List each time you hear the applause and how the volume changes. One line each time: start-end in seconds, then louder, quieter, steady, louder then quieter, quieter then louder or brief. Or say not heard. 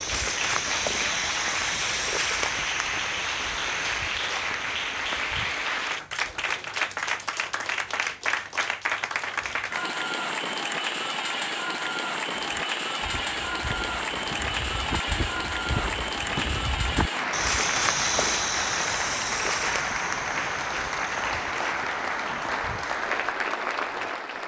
0.0-24.4 steady.